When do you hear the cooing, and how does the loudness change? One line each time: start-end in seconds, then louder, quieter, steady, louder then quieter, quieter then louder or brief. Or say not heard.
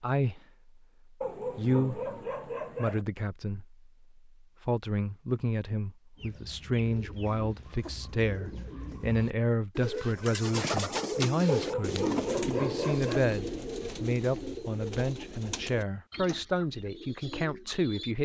6.2-18.1 louder then quieter.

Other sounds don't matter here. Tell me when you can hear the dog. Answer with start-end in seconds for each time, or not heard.
1.2-3.0, 11.4-13.2.